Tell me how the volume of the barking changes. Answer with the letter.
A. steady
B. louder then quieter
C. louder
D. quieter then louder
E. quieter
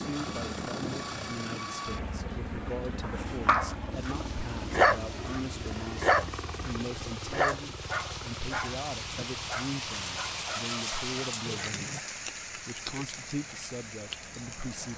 E.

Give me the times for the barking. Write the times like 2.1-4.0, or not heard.
3.0-12.0.